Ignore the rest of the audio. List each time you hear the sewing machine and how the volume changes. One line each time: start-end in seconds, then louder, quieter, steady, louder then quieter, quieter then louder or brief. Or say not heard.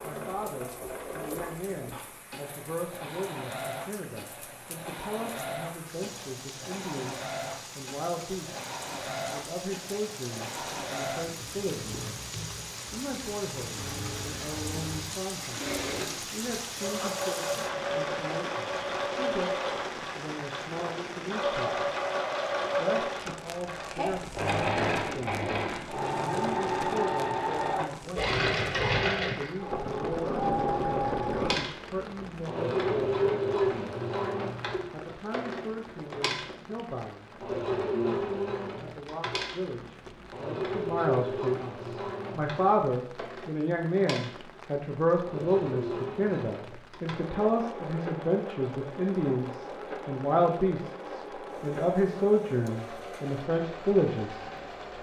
0.0-54.9 louder then quieter.